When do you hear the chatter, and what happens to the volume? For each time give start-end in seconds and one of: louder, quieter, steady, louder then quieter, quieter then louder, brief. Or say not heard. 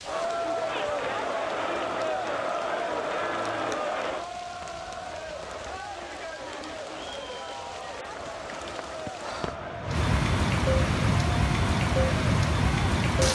0.0-13.1 quieter.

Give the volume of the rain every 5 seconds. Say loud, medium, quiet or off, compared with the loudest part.
quiet, quiet, loud.